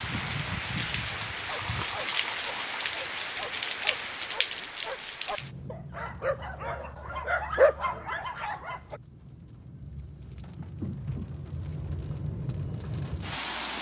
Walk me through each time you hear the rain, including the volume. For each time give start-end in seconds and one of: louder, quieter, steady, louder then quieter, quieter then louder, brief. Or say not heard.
0.0-13.7 quieter then louder.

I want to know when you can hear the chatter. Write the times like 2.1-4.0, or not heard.
not heard.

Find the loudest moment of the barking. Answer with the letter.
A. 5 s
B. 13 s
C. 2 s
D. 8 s
D.